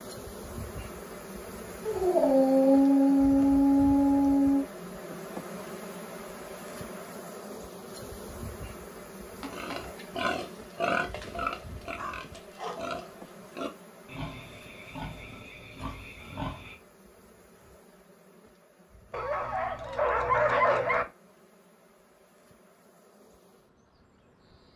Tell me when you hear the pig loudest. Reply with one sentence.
The loudest moment of the pig is at 11 seconds.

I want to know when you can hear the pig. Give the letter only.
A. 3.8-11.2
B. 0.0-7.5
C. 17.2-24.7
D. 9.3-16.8
D.